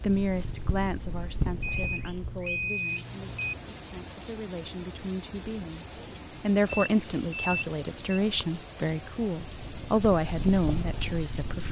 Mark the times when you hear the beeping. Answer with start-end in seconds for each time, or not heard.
1.6-3.5, 6.7-8.2.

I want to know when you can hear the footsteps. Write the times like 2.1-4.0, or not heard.
not heard.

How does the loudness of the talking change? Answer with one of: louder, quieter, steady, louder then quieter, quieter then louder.
quieter then louder.